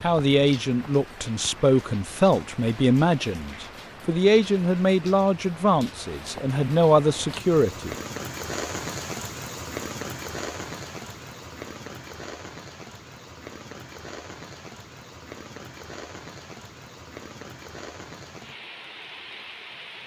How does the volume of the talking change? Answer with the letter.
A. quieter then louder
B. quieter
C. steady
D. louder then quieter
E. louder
C.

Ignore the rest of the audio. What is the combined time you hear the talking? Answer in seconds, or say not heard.
8 s.